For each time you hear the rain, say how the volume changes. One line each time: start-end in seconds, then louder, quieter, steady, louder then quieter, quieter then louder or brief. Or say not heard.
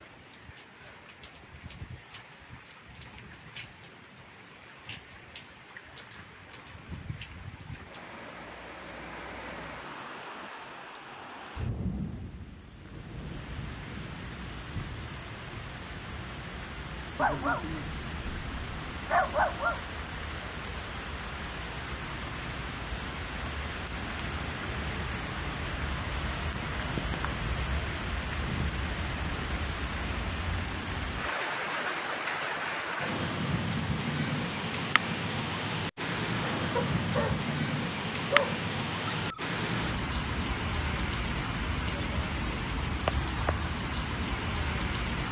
0.0-45.2 louder.